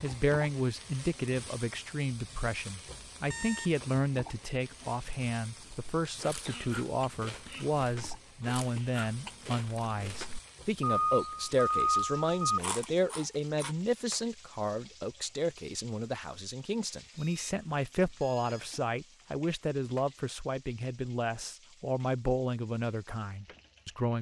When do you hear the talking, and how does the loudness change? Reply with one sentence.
You can hear the talking from 0.0 to 24.1 s, at a steady volume.